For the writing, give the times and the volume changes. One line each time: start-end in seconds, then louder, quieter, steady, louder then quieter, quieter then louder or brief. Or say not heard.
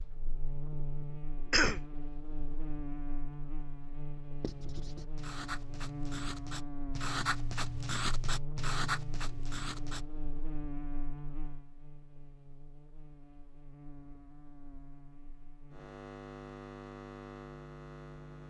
4.4-10.1 louder.